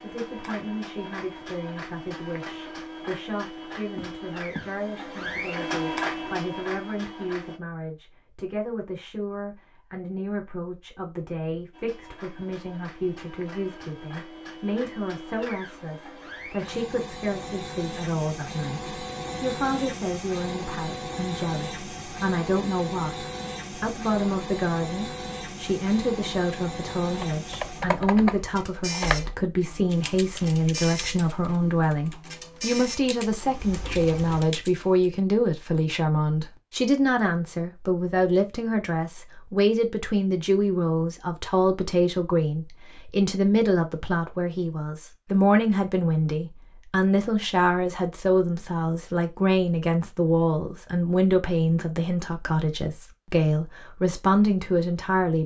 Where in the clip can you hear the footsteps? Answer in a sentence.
You can hear the footsteps from 4.0 to 4.8 s.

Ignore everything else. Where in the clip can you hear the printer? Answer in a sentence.
The printer can be heard from 0.0 to 7.6 s and from 11.7 to 34.5 s.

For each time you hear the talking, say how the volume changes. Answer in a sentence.
The talking can be heard from 0.0 to 55.4 s, getting louder.